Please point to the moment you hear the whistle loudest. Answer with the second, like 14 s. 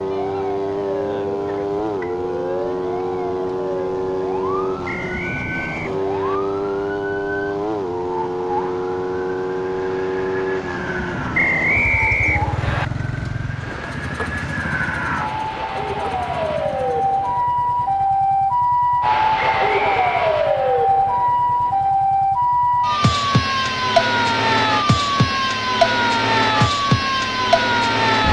12 s.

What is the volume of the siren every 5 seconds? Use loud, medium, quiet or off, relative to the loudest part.
quiet, quiet, quiet, loud, loud, loud.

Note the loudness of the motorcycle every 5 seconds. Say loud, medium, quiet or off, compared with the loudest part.
loud, loud, loud, quiet, quiet, quiet.